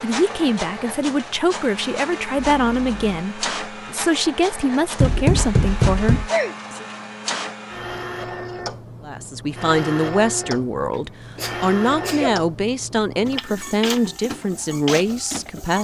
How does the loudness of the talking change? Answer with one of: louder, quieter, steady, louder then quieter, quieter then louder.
steady.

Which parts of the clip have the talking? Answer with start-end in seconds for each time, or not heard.
0.0-6.8, 9.1-15.7.